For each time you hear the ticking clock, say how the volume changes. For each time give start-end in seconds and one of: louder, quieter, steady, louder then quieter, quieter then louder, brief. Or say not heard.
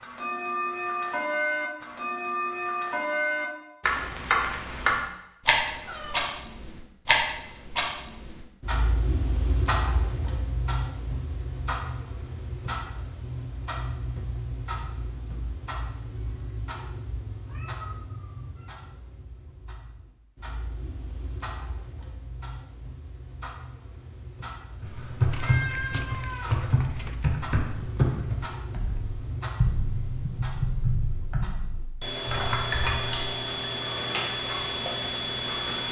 0.0-35.8 quieter then louder.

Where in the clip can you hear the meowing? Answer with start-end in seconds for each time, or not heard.
5.7-6.3, 17.4-18.9, 25.3-27.2.